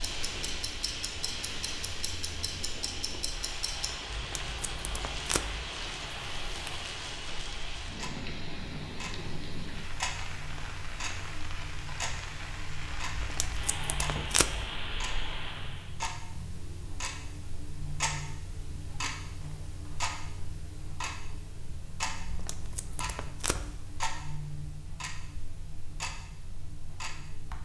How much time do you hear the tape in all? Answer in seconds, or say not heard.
5 s.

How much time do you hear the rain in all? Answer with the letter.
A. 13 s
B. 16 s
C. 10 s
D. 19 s
B.